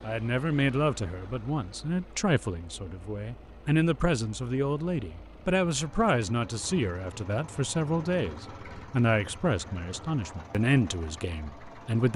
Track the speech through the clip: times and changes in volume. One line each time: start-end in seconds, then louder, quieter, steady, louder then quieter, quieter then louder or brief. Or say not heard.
0.0-12.1 steady.